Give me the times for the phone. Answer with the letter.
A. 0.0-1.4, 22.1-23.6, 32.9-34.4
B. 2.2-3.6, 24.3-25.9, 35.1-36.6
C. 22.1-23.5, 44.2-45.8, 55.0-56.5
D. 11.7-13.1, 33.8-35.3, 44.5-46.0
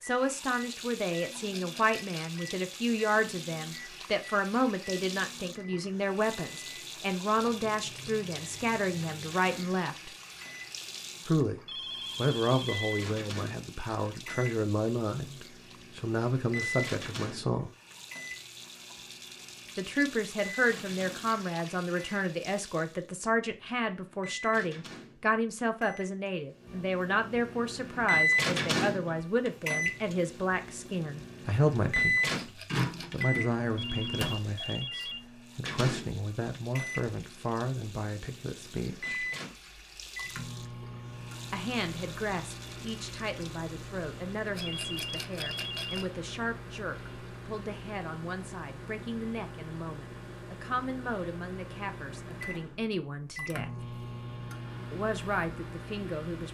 D.